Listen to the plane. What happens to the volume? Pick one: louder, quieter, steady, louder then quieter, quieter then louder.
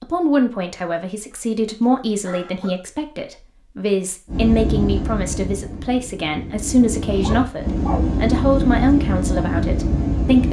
quieter then louder.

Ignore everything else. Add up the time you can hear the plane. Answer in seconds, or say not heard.
6 s.